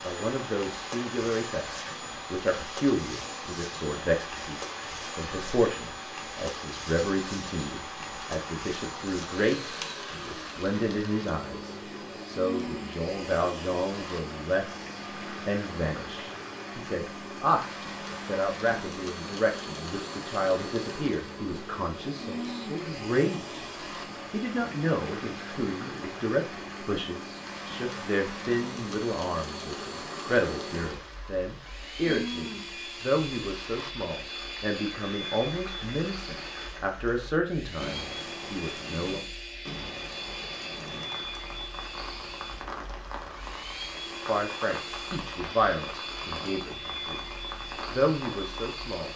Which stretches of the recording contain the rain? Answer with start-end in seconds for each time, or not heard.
0.0-49.1.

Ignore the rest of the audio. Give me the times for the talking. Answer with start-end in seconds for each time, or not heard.
0.0-23.6, 24.3-39.2, 44.2-49.1.